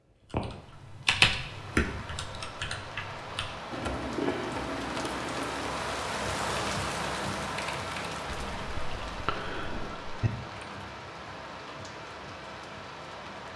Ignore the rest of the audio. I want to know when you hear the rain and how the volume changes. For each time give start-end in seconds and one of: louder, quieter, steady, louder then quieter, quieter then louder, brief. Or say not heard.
0.0-13.5 louder then quieter.